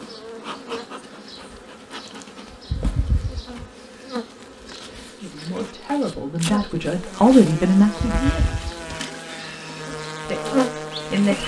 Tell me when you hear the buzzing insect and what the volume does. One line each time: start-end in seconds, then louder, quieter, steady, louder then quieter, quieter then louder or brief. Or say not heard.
0.0-11.4 louder.